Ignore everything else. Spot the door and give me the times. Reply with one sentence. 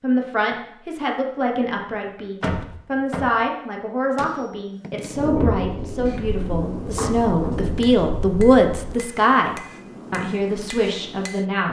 The door can be heard from 2.4 to 3.3 s and from 6.8 to 7.6 s.